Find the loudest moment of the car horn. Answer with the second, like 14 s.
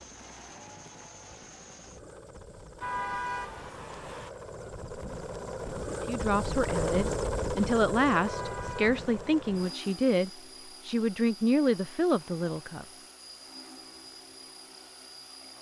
3 s.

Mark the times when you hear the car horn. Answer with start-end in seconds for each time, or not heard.
2.8-4.3, 8.2-9.8.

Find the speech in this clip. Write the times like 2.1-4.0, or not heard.
5.9-12.8.